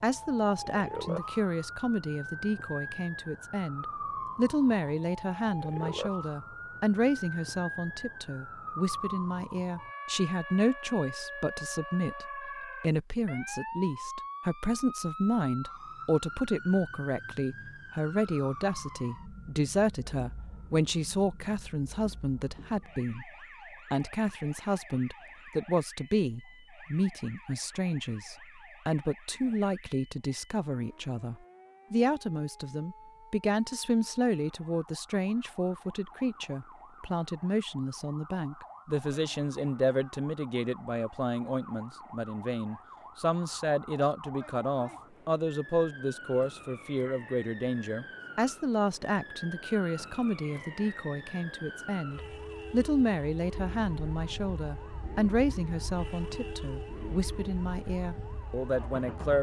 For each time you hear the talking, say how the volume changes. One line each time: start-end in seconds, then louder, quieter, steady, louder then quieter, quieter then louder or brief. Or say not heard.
0.0-23.3 steady
23.9-59.3 steady.